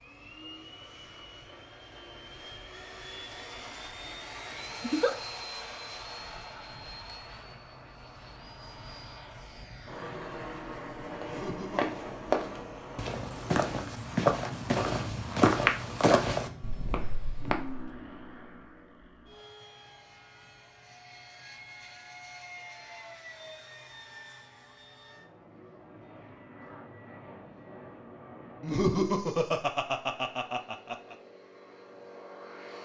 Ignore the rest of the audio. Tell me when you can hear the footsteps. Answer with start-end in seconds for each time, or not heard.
11.2-17.9.